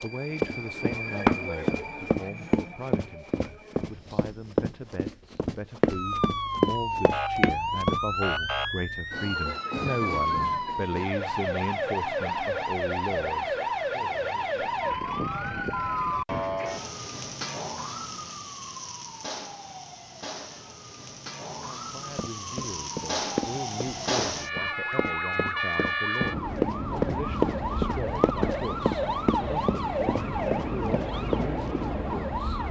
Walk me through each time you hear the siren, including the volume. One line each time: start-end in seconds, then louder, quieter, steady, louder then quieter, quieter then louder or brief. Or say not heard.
5.8-32.6 quieter then louder.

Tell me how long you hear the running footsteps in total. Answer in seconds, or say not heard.
18 s.